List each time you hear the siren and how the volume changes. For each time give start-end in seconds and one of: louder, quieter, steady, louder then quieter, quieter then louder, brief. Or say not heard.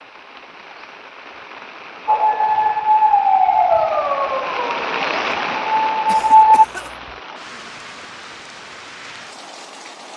2.0-6.7 quieter then louder.